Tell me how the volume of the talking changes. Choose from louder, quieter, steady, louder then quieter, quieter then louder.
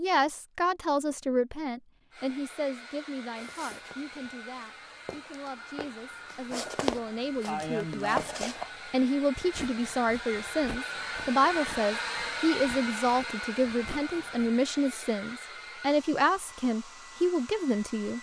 quieter then louder.